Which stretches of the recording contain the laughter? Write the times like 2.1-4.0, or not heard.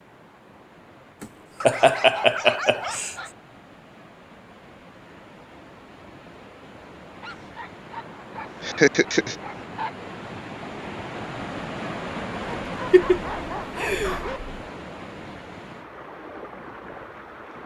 1.2-3.1, 8.6-9.3, 12.9-14.3.